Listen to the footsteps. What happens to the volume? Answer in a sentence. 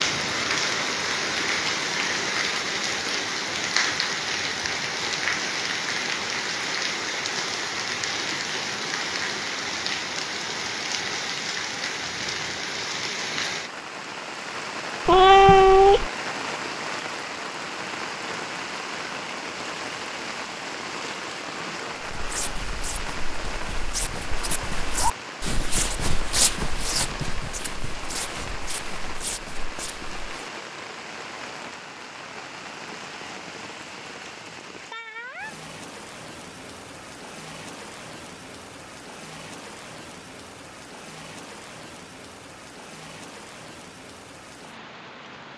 The loudness of the footsteps goes up, then down.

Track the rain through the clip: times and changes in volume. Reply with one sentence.
The rain can be heard from 0.0 to 45.5 s, getting quieter.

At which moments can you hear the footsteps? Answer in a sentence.
The footsteps can be heard from 22.0 to 30.2 s.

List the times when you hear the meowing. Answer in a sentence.
The meowing can be heard from 15.1 to 16.1 s.